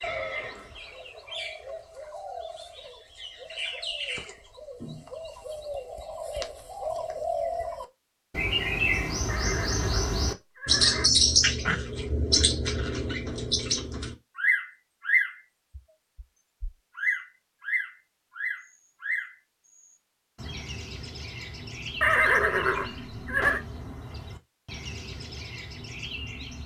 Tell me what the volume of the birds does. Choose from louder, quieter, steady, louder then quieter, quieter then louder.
louder then quieter.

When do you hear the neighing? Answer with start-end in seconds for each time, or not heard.
0.0-0.9, 9.2-11.1, 22.0-23.6.